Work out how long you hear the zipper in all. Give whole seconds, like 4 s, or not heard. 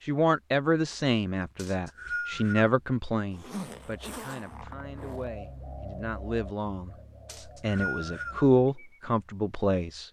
2 s.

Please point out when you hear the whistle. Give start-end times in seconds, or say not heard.
1.6-2.7, 7.2-8.4.